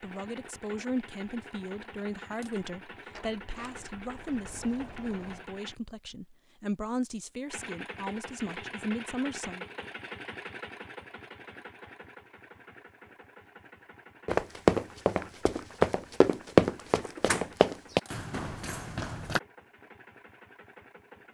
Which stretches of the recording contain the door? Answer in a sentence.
The door can be heard from 3.1 to 5.5 s and from 16.9 to 17.9 s.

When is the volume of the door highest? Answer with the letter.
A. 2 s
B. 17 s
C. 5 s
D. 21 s
B.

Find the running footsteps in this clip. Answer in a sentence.
The running footsteps can be heard from 14.2 to 19.4 s.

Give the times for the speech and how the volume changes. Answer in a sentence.
The speech can be heard from 0.0 to 9.7 s, at a steady volume.